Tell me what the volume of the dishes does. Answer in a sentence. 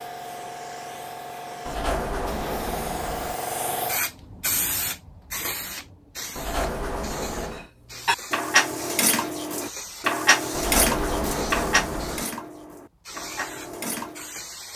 The loudness of the dishes goes down.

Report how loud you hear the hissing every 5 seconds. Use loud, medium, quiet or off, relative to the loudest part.
loud, medium, medium.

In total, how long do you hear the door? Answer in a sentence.
You can hear the door for 5 seconds altogether.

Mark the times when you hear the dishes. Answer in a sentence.
The dishes can be heard from 7.5 to 14.2 s.